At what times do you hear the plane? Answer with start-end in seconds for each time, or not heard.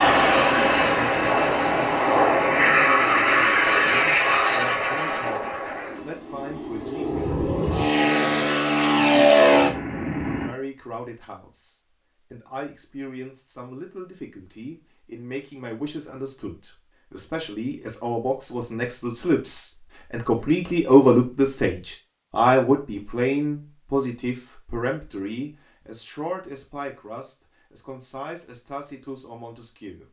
0.0-10.6.